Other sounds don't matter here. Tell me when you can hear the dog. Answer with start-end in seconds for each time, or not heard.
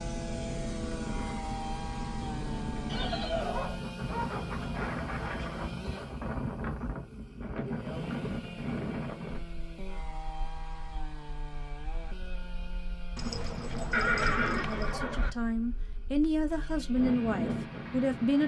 2.9-5.8, 13.2-15.0.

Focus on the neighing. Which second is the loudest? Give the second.
14 s.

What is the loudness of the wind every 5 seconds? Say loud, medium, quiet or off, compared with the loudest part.
loud, loud, quiet, loud.